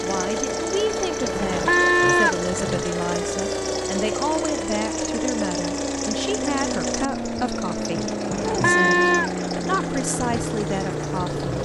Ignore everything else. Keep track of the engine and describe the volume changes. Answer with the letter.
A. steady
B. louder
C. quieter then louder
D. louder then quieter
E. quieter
A.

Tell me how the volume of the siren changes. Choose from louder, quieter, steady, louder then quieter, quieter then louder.
steady.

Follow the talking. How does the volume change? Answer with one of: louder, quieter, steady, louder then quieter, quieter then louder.
steady.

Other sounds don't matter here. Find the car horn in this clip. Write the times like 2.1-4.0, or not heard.
1.3-2.9, 8.3-9.3.